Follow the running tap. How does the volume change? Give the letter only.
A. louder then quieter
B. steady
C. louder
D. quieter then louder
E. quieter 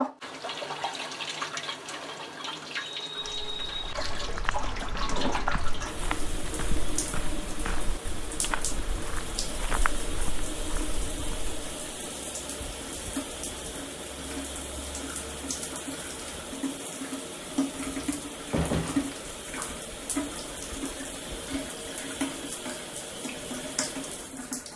B.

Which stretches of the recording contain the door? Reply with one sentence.
You can hear the door from 17.8 to 19.2 s.